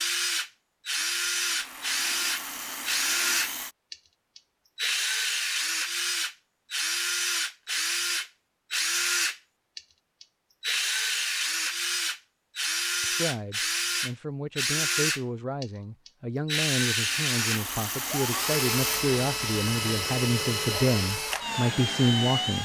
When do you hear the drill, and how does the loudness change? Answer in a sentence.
The drill can be heard from 0.0 to 22.5 s, at a steady volume.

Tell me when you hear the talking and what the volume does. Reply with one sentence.
You can hear the talking from 13.0 to 22.5 s, getting louder.